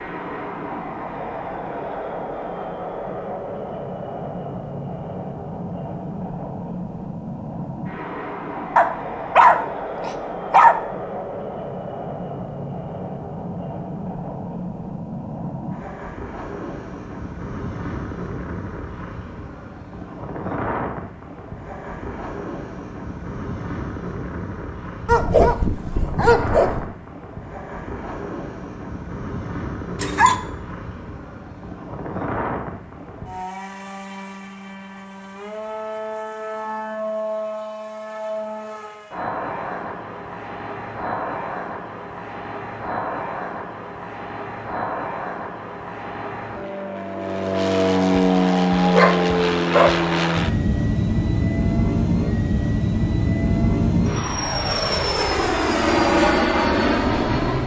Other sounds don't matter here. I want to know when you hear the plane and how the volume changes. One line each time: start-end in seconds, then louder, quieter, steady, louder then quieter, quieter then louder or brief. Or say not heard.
0.0-57.6 louder.